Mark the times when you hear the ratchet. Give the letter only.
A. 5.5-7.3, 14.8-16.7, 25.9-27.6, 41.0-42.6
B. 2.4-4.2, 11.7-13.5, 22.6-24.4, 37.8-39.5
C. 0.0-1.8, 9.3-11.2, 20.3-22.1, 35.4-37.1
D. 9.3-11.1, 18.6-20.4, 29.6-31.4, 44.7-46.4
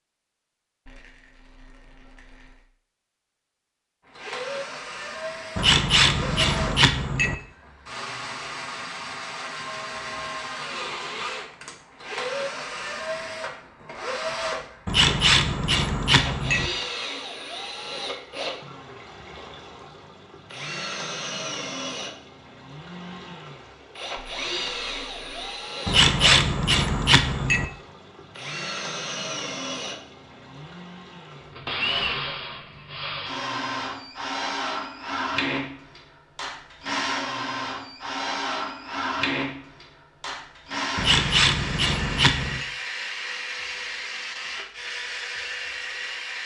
A.